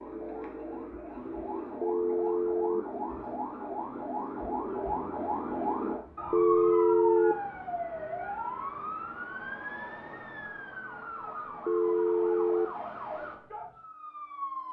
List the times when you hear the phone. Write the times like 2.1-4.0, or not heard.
1.8-2.8, 6.3-7.3, 11.7-12.7.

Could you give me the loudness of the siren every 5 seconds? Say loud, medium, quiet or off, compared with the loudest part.
loud, loud, medium.